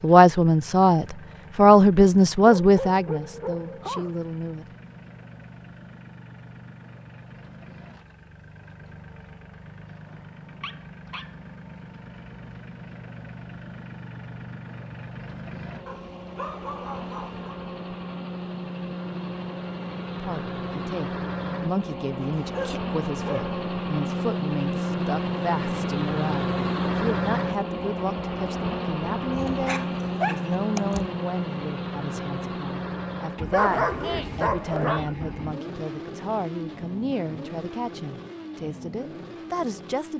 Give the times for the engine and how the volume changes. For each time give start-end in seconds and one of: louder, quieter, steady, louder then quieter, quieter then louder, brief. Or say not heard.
0.0-40.1 louder then quieter.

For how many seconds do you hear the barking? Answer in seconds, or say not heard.
9 s.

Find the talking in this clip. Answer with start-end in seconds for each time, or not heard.
0.0-4.7, 20.1-40.1.